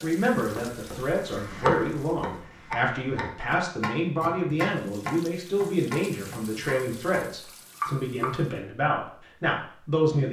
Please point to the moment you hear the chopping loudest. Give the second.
2 s.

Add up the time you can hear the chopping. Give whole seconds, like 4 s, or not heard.
8 s.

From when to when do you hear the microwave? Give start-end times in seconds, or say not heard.
not heard.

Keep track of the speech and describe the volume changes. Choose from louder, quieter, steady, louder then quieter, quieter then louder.
steady.